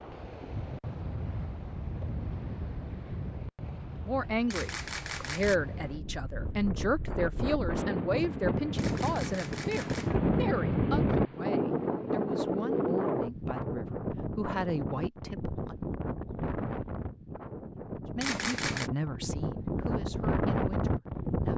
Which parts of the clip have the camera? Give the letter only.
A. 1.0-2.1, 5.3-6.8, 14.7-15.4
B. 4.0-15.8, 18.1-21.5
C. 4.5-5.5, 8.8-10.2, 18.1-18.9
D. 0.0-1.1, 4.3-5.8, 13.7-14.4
C.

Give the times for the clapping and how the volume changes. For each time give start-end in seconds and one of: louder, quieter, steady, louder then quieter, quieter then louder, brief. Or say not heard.
not heard.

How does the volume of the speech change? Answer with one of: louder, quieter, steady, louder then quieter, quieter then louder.
quieter.